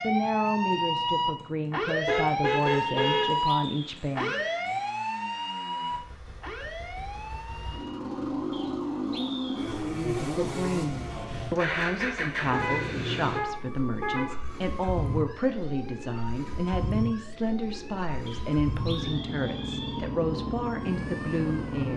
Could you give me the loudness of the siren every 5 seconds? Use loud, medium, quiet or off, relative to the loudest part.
loud, medium, quiet, quiet, quiet.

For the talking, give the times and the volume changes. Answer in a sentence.
You can hear the talking from 0.0 to 4.3 s, at a steady volume; and from 9.7 to 21.9 s, at a steady volume.